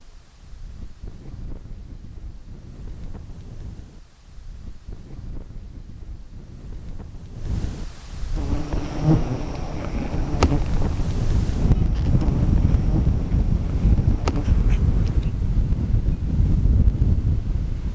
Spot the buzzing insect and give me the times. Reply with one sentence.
You can hear the buzzing insect from 8.3 to 15.3 s.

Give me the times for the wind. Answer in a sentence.
You can hear the wind from 0.0 to 17.8 s.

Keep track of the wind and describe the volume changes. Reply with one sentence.
The loudness of the wind goes up.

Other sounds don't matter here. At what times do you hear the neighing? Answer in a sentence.
The neighing can't be heard in this clip.